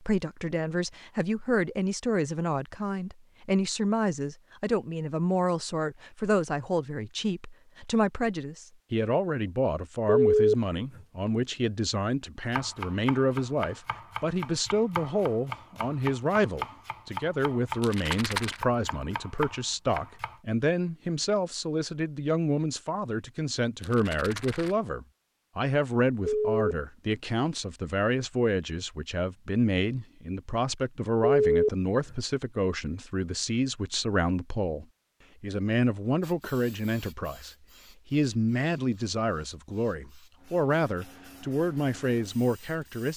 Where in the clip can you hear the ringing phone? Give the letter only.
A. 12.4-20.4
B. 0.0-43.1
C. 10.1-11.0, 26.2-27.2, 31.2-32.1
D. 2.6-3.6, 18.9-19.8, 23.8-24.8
C.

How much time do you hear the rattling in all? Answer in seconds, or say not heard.
2 s.